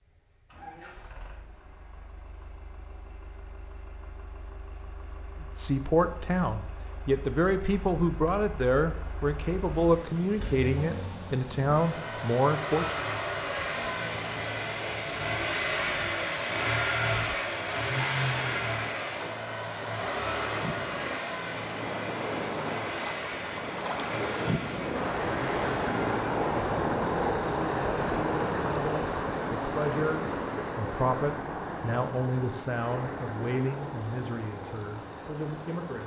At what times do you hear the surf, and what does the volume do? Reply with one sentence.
You can hear the surf from 9.7 to 36.0 s, getting louder then quieter.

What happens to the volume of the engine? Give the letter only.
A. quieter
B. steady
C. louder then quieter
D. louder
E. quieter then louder
C.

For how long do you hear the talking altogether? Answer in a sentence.
You can hear the talking for 16 seconds altogether.